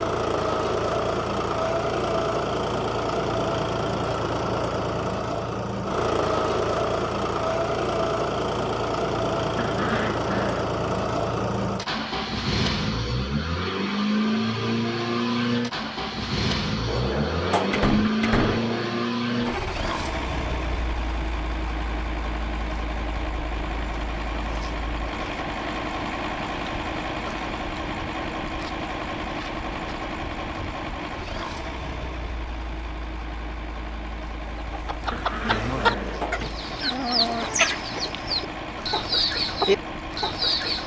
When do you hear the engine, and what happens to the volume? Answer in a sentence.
The engine can be heard from 0.0 to 40.8 s, getting quieter.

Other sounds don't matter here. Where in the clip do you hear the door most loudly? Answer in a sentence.
The loudest moment of the door is at 18 seconds.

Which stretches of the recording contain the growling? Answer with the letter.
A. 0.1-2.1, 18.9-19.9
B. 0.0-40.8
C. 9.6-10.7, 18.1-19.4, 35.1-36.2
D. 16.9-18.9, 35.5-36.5
C.